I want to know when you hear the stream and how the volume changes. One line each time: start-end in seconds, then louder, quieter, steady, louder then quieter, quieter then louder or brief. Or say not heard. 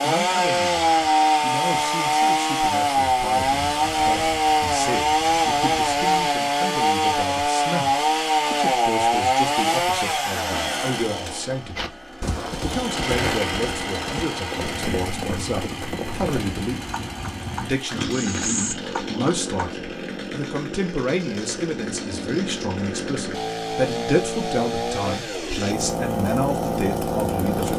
not heard.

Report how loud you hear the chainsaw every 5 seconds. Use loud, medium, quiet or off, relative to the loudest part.
loud, loud, medium, quiet, medium, medium.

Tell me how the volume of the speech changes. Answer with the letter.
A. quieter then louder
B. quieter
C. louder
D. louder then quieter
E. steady
C.